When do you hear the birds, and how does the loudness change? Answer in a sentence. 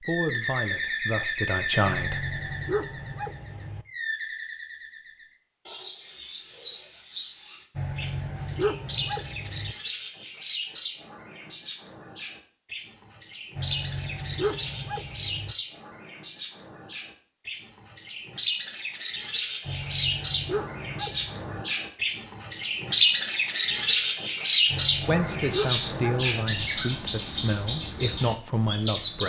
You can hear the birds from 0.0 to 29.2 s, getting louder.